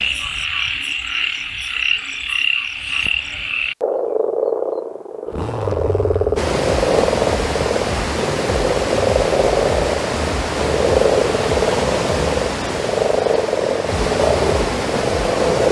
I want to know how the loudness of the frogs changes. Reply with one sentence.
The loudness of the frogs stays about the same.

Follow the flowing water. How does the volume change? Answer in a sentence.
The loudness of the flowing water stays about the same.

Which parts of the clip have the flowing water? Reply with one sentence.
You can hear the flowing water from 6.3 to 15.6 s.